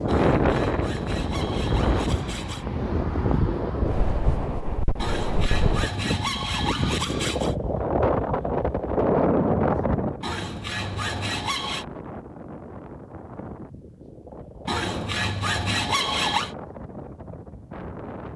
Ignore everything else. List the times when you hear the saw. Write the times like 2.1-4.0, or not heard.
0.1-2.6, 5.0-7.5, 10.2-11.8, 14.7-16.6.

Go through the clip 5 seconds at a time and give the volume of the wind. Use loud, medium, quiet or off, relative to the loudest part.
loud, loud, quiet, quiet.